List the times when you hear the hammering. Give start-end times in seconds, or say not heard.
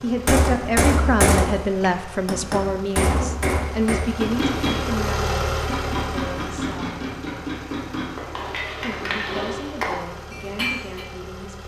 0.2-11.1.